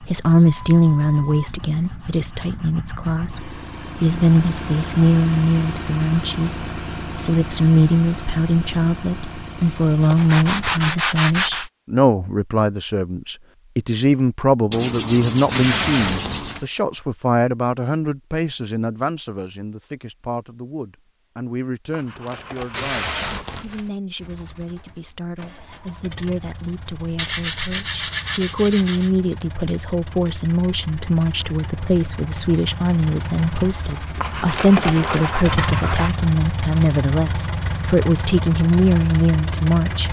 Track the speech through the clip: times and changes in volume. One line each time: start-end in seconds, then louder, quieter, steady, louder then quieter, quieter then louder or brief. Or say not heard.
0.0-40.0 quieter then louder.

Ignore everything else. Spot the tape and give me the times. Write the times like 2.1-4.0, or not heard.
15.5-16.7, 22.7-23.9.